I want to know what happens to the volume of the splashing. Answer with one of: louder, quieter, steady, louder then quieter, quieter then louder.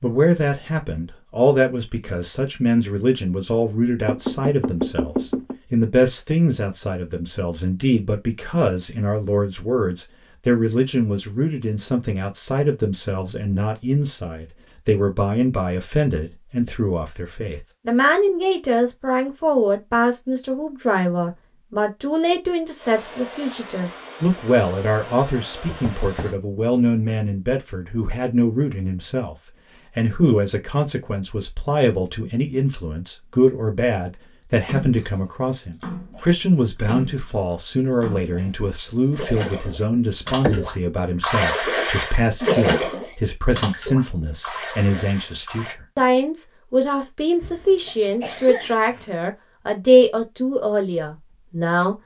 louder then quieter.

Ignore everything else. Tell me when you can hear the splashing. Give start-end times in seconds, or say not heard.
34.6-45.8.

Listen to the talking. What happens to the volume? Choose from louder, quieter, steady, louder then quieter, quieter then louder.
steady.